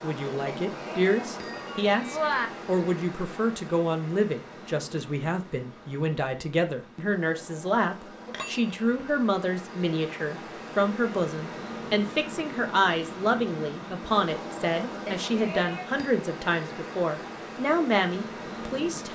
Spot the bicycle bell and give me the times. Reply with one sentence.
You can hear the bicycle bell from 0.5 to 2.5 s, from 8.2 to 9.1 s and from 15.1 to 16.1 s.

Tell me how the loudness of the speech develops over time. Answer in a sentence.
The volume of the speech stays about the same.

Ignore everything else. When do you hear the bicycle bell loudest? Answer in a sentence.
The loudest moment of the bicycle bell is at 2 seconds.